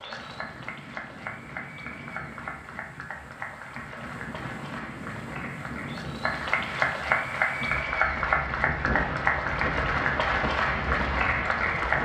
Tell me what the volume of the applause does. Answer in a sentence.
The loudness of the applause goes up.